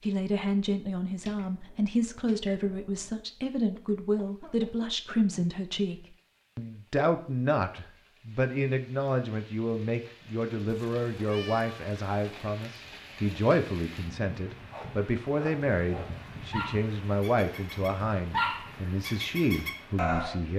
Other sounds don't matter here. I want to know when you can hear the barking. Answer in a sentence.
The barking can be heard from 14.7 to 20.4 s.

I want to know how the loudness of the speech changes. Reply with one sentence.
The loudness of the speech stays about the same.